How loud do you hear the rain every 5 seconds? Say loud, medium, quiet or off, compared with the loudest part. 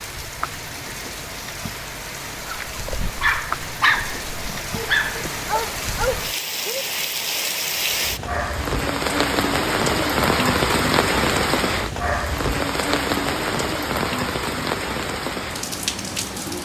medium, loud, loud, medium.